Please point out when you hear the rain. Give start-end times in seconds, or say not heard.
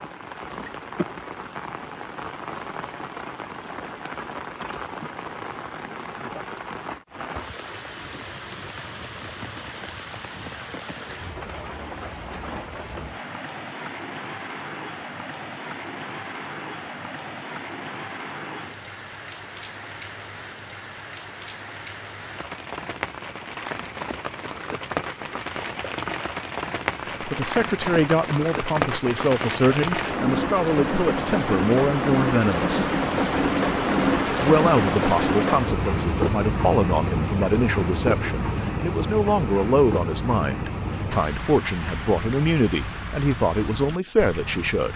0.0-44.9.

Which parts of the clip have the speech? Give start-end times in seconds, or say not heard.
27.2-32.9, 34.4-44.9.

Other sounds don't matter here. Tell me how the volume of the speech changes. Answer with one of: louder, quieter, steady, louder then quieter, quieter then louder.
steady.